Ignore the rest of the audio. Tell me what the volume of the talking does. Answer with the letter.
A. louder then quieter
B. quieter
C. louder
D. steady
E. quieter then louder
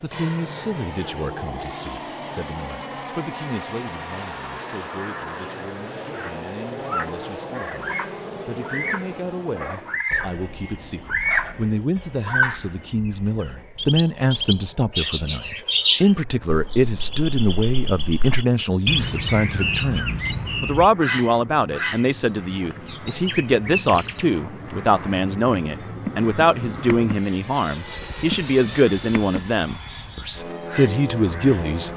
C.